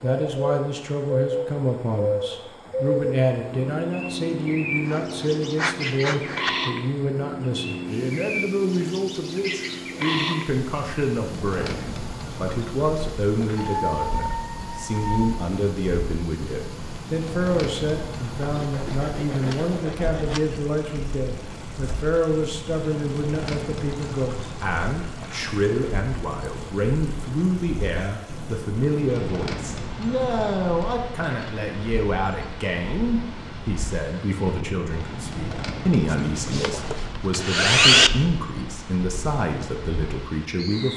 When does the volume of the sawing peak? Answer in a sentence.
The loudest moment of the sawing is at 38 seconds.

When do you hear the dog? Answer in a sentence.
The dog can be heard from 13.7 to 15.5 s.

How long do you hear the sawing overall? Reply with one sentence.
The sawing can be heard for 6 seconds in total.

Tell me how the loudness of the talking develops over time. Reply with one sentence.
The volume of the talking stays about the same.